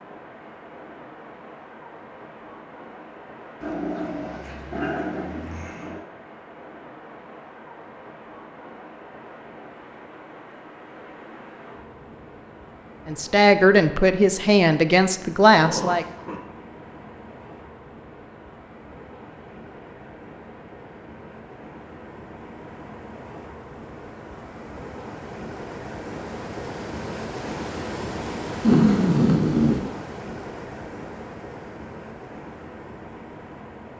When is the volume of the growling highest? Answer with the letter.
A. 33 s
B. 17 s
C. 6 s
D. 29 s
D.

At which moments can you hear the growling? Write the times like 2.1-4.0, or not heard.
3.6-6.0, 15.6-16.4, 28.6-29.8.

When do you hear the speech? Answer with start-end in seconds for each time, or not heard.
13.1-16.1.